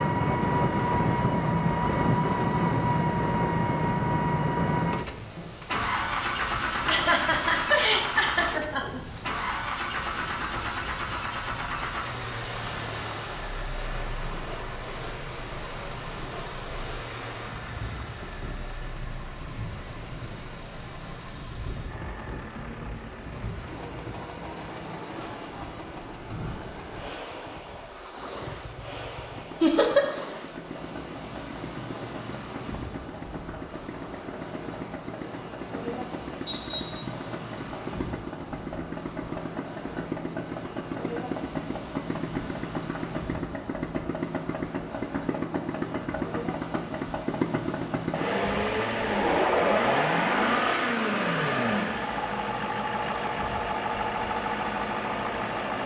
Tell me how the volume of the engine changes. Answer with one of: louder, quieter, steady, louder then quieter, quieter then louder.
quieter then louder.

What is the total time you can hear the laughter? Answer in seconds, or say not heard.
4 s.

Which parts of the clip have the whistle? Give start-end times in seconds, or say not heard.
36.5-37.0.